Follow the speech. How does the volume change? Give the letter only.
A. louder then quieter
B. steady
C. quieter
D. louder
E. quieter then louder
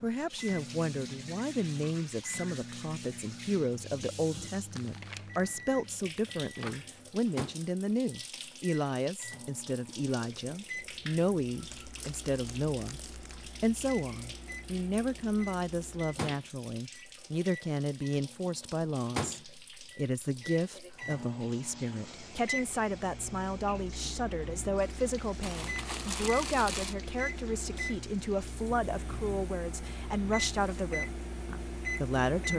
B.